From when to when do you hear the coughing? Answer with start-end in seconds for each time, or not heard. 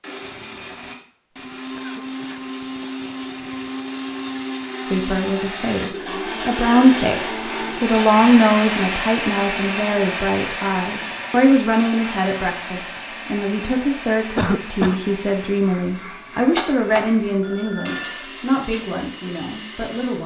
1.7-3.0, 14.3-15.1.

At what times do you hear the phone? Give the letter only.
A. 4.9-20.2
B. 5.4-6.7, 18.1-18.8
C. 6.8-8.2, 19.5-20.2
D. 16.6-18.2
D.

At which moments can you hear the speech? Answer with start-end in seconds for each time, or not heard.
4.9-20.2.